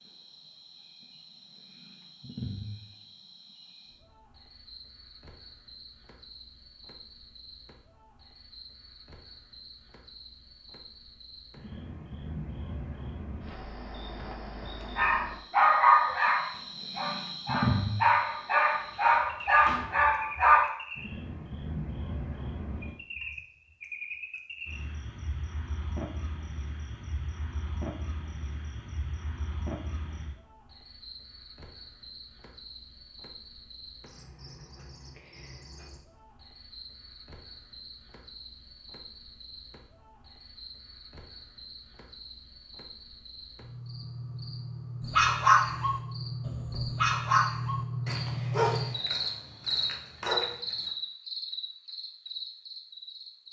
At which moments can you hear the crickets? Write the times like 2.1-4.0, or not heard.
0.0-53.4.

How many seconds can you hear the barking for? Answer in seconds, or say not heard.
12 s.